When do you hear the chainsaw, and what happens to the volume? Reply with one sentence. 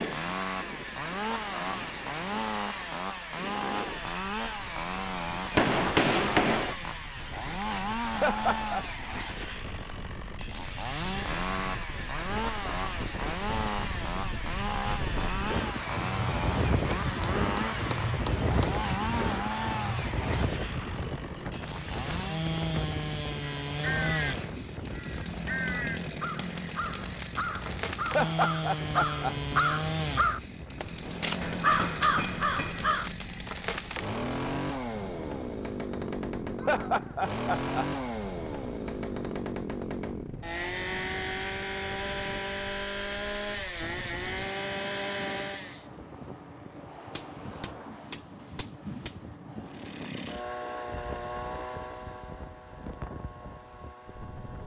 The chainsaw can be heard from 0.0 to 45.9 s, at a steady volume; and from 49.6 to 54.6 s, getting quieter.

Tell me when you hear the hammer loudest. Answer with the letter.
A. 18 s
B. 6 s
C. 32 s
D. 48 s
B.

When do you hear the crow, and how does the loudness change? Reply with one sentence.
The crow can be heard from 23.4 to 33.1 s, getting louder.